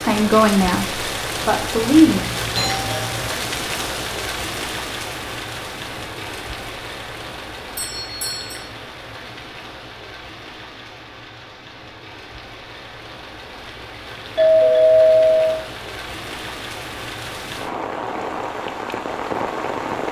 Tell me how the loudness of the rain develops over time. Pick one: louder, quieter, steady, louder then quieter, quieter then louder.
quieter then louder.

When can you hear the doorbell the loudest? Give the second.
15 s.